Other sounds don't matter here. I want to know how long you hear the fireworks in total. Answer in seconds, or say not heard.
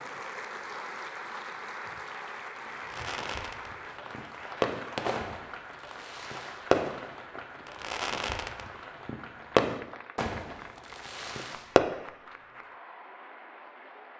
9 s.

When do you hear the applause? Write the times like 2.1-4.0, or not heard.
0.0-14.1.